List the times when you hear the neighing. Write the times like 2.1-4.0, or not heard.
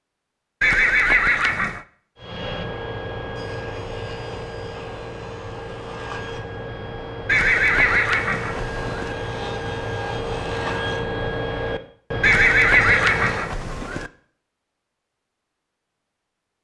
0.6-1.9, 7.2-9.2, 12.2-14.1.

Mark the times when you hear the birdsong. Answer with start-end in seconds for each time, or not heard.
not heard.